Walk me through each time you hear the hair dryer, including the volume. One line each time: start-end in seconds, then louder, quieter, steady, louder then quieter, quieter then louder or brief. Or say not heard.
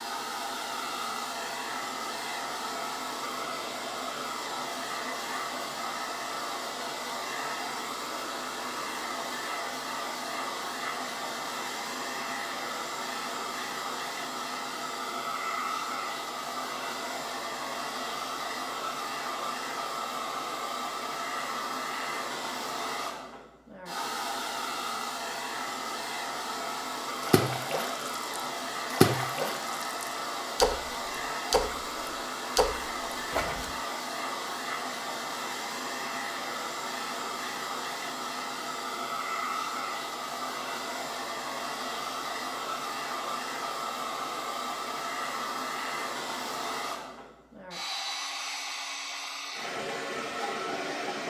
0.0-51.2 steady.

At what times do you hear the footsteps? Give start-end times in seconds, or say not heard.
not heard.